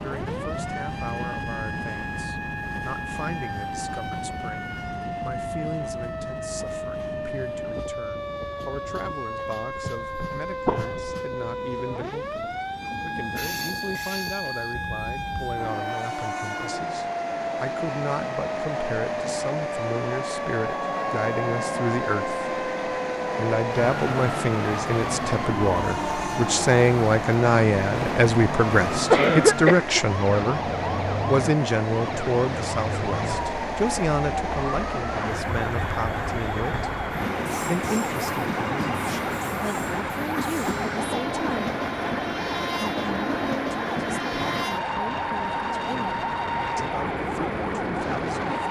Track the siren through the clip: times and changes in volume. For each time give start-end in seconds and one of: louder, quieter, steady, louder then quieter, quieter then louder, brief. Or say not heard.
0.0-48.6 steady.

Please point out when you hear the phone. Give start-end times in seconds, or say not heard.
not heard.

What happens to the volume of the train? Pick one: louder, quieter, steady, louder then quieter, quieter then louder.
louder.